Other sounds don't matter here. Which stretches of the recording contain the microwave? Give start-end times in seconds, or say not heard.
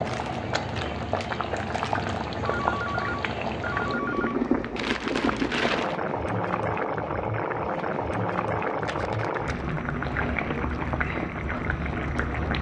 not heard.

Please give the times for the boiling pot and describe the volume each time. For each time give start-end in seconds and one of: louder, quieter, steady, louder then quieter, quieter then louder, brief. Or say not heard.
0.0-12.5 steady.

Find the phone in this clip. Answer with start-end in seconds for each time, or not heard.
2.5-4.3.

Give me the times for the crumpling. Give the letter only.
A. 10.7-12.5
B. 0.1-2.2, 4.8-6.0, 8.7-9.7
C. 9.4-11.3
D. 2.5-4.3
B.